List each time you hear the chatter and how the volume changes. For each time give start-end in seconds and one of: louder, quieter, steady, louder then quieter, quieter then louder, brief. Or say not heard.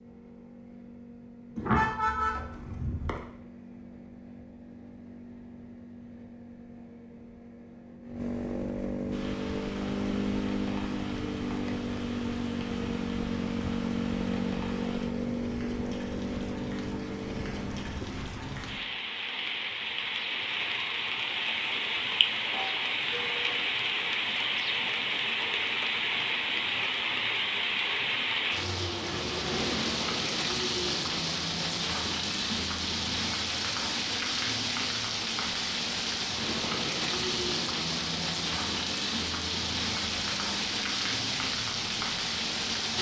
not heard.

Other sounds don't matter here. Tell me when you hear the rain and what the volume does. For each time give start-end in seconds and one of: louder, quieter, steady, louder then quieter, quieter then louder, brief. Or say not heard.
9.1-42.9 louder.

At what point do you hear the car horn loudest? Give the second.
2 s.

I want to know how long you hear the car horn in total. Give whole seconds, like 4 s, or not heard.
3 s.